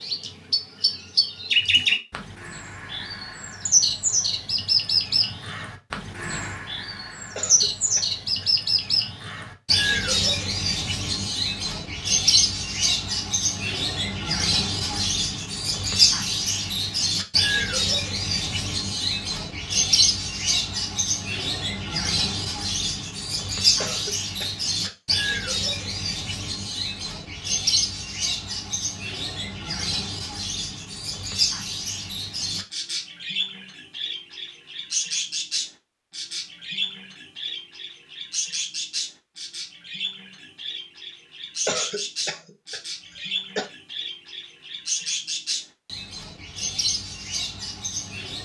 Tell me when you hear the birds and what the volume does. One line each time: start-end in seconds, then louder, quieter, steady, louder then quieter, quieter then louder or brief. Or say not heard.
0.0-48.4 quieter.